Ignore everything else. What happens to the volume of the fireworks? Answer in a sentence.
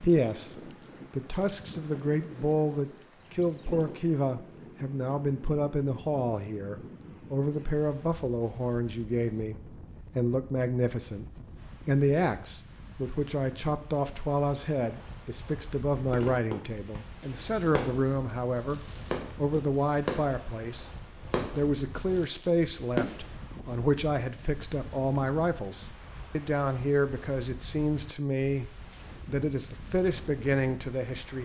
The volume of the fireworks goes up, then down.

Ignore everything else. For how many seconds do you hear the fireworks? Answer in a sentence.
The fireworks can be heard for 7 seconds in total.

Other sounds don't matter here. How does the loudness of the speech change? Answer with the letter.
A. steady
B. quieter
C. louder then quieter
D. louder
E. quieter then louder
A.